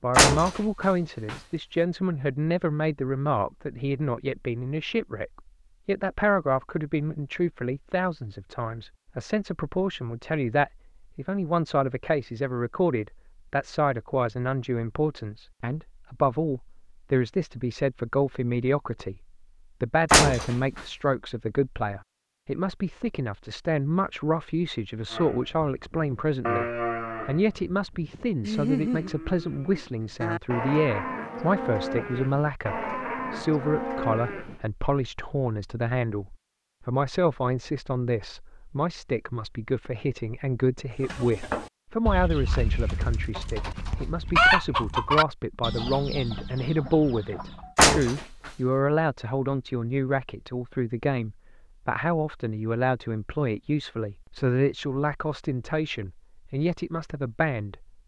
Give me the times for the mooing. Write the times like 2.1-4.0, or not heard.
25.1-34.6.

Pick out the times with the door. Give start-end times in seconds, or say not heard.
0.1-1.4, 20.1-20.8, 47.8-48.5.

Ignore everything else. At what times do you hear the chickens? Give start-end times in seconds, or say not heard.
41.0-47.8.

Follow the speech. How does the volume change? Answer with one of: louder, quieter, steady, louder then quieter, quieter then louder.
steady.